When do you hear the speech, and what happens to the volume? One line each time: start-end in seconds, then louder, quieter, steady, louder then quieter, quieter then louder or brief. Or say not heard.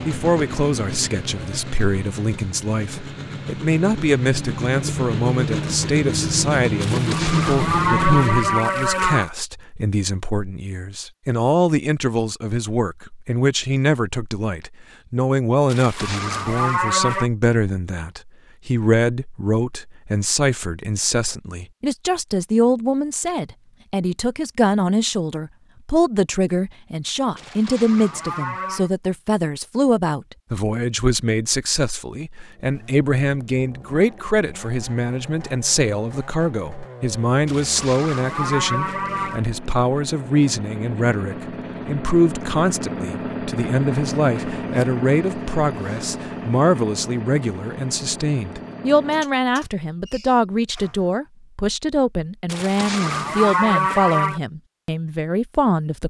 0.1-56.0 steady.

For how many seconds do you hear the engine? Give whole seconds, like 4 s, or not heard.
27 s.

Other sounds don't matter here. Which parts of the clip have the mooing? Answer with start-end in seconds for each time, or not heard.
6.8-9.3, 15.7-17.3, 27.4-28.9, 37.5-39.4, 52.5-54.4.